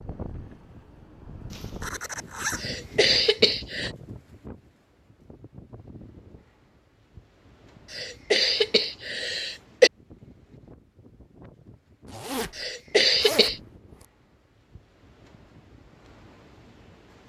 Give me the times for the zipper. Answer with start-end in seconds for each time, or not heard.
1.5-2.6, 12.1-14.1.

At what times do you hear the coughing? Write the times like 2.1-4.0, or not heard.
2.5-3.9, 7.9-9.9, 12.6-13.6.